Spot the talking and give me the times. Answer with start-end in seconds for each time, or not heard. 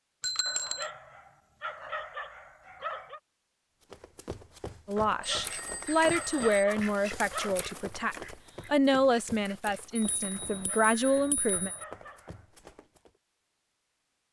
4.8-11.7.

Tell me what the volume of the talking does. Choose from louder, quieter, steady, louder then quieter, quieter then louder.
steady.